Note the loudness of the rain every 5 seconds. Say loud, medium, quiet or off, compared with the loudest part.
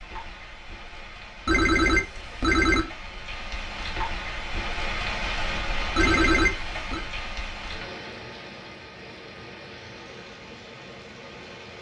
loud, loud, medium.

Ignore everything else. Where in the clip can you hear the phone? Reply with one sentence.
The phone can be heard from 1.4 to 2.8 s and from 6.0 to 7.0 s.